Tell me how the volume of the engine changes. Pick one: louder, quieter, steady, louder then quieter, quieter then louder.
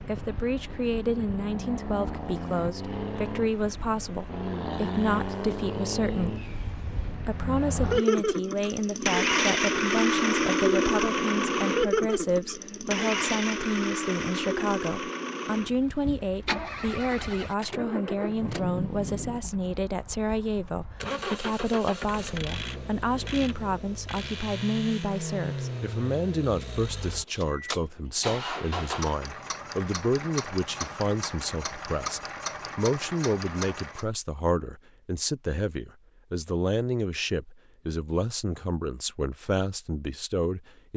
louder then quieter.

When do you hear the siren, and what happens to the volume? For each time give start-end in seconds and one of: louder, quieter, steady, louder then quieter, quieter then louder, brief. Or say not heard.
not heard.